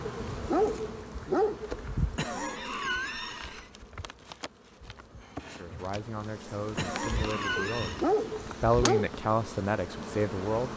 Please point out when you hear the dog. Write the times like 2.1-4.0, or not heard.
0.1-1.8, 7.8-9.2.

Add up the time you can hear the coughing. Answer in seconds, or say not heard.
3 s.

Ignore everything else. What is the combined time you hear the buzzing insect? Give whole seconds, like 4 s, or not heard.
11 s.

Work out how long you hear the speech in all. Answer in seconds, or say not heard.
5 s.